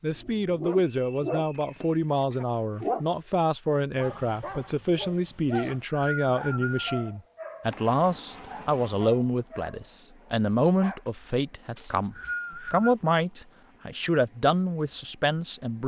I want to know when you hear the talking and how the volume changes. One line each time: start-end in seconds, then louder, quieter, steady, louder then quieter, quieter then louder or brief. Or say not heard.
0.0-15.8 steady.